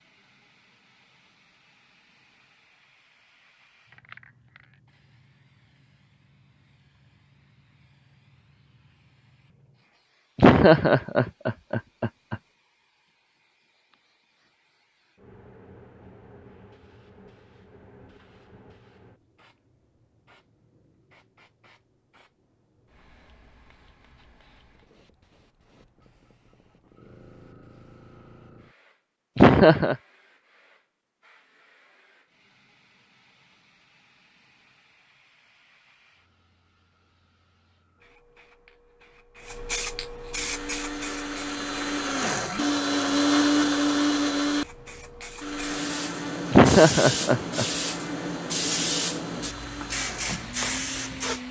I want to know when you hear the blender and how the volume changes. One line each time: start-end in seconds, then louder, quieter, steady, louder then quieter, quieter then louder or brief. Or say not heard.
40.3-51.4 louder then quieter.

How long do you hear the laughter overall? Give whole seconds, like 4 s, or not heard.
4 s.